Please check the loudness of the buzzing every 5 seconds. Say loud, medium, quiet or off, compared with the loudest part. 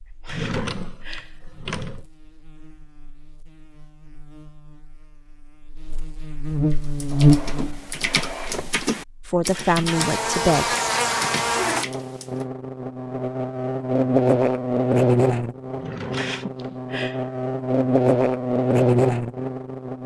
quiet, loud, loud, loud.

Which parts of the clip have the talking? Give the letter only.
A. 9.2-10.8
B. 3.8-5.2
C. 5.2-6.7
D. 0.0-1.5
A.